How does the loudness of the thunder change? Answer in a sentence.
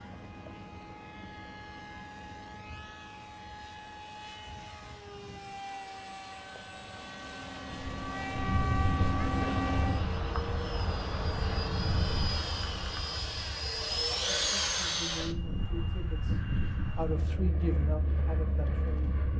The loudness of the thunder goes down, then up.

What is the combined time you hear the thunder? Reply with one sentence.
The thunder can be heard for 5 seconds in total.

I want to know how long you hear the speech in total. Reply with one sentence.
You can hear the speech for 5 seconds altogether.